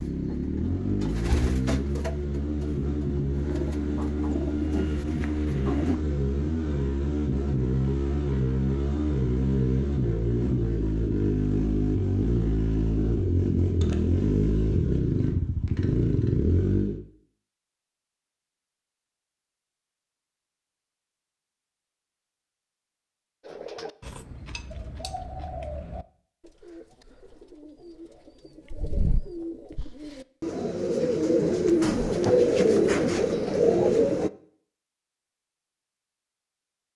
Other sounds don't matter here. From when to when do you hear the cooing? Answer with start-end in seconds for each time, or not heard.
0.0-6.0, 23.4-34.3.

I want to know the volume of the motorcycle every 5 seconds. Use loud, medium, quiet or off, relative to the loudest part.
loud, loud, loud, loud, off, off, off, off.